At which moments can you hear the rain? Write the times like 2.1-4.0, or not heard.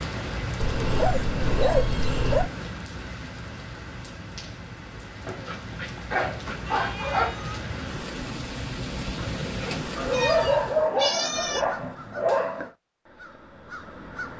0.0-10.9.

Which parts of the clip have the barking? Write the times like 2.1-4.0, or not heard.
0.6-2.5, 5.2-7.3, 9.9-12.7.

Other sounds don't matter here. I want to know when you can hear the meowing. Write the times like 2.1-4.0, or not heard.
0.9-2.7, 6.7-7.7, 10.1-11.6.